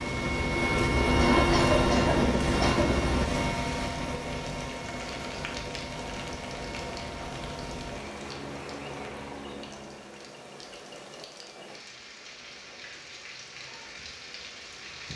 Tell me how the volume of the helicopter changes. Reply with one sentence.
The volume of the helicopter goes down.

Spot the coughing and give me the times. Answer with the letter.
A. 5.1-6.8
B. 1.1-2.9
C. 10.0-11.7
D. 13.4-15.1
B.